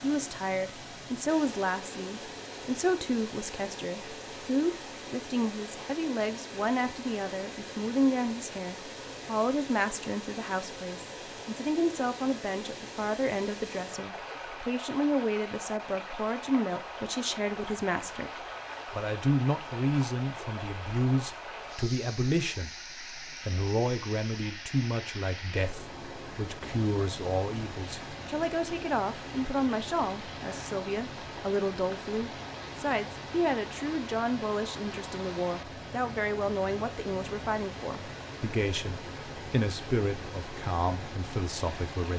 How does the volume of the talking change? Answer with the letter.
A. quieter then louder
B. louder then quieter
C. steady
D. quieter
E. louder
C.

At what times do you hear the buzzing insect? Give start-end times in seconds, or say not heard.
not heard.